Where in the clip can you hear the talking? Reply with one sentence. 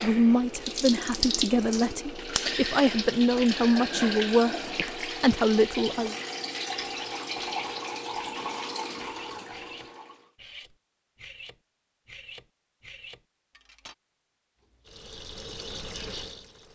The talking can be heard from 0.0 to 6.2 s.